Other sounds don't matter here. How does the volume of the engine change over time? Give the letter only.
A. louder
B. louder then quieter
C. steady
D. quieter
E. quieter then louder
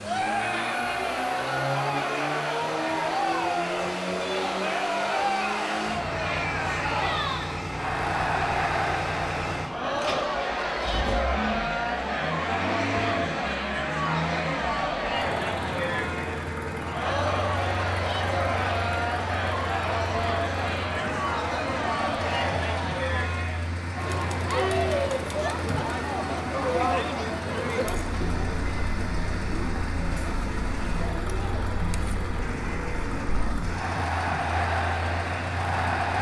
C.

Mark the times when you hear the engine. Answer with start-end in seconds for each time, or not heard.
0.0-36.1.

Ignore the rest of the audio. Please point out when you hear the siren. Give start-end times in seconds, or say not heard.
not heard.